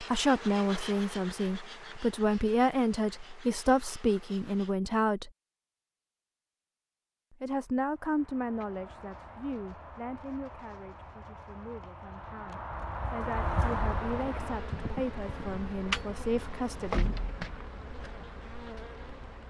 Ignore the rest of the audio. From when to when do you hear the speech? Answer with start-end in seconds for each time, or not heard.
0.0-5.3, 7.4-17.2.